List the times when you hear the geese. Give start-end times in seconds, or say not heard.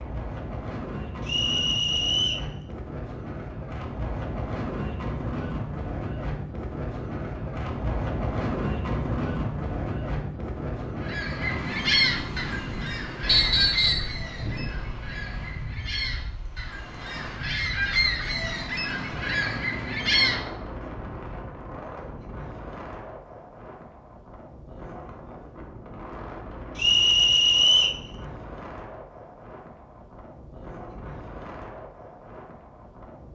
11.0-20.4.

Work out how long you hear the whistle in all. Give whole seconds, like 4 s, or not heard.
3 s.